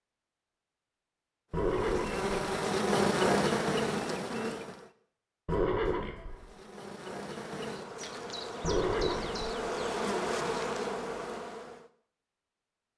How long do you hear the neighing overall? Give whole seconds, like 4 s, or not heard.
3 s.